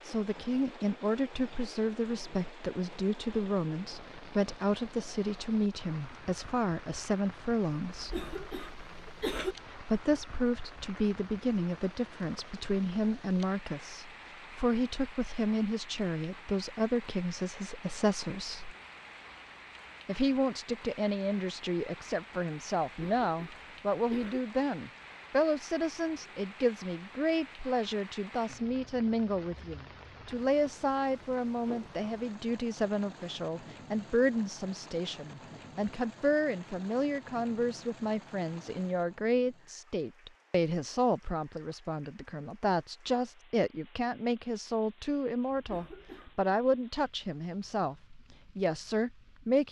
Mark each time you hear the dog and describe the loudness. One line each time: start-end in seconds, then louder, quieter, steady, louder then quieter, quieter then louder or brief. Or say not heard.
not heard.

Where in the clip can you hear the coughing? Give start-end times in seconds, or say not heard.
7.9-9.6, 22.9-24.4, 45.5-46.4.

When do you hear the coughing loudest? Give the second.
9 s.